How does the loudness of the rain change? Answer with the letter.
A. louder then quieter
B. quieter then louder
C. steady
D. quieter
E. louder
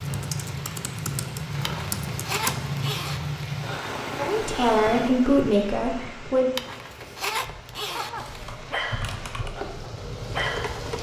B.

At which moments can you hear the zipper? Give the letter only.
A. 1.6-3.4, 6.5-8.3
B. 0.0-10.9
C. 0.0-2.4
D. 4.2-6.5
A.